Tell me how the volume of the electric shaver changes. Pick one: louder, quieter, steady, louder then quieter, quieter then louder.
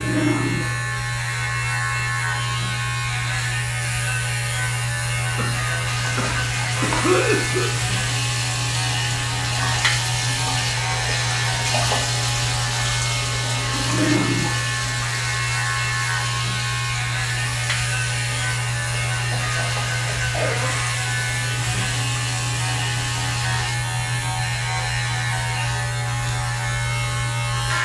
steady.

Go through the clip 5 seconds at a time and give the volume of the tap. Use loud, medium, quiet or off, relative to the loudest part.
off, loud, loud, medium, medium, off.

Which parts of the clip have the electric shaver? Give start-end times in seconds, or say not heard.
0.0-27.7.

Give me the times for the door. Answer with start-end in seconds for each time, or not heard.
not heard.